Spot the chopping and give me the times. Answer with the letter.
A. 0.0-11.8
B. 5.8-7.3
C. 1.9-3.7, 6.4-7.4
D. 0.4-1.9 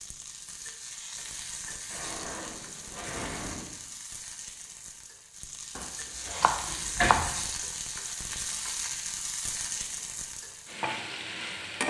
B.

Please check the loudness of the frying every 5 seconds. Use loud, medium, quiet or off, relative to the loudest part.
medium, loud, loud.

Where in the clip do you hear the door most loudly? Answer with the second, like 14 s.
7 s.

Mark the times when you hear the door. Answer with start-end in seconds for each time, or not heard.
1.9-3.7, 6.4-7.4.